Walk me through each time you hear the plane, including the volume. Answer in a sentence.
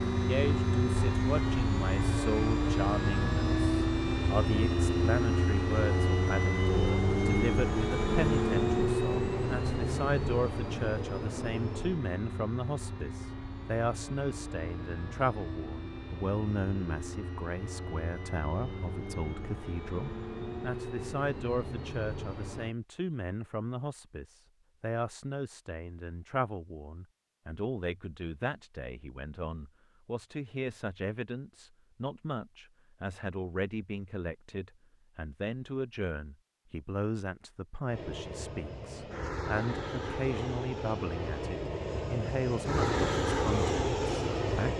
You can hear the plane from 0.0 to 22.8 s, getting quieter; and from 37.9 to 44.7 s, getting louder.